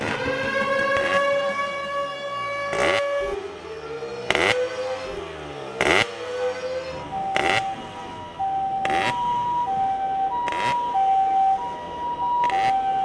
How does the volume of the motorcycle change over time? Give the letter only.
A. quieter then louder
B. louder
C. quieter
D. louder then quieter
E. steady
D.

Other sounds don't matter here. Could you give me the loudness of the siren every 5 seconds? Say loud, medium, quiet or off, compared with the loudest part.
loud, medium, loud.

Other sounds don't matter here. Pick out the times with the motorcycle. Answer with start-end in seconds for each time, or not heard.
0.0-13.0.